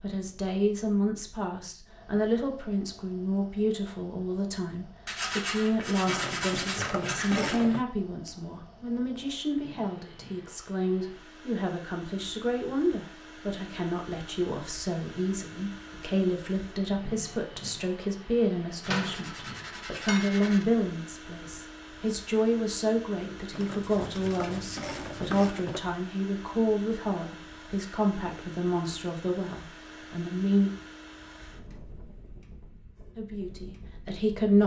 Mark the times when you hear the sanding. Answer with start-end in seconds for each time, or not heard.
5.0-7.7, 18.8-20.6, 23.8-25.4.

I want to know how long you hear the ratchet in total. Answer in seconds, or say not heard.
4 s.